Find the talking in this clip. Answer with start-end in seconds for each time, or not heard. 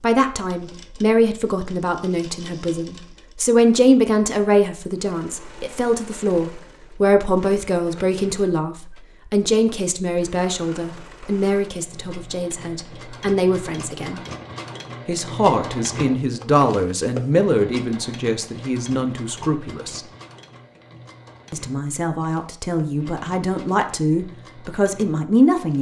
0.0-14.2, 15.1-20.0, 21.5-25.7.